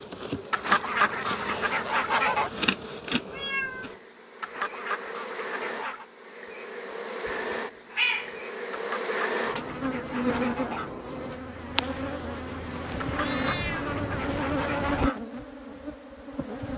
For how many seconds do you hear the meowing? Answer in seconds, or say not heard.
3 s.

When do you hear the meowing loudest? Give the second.
8 s.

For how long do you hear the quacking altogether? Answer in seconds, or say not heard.
8 s.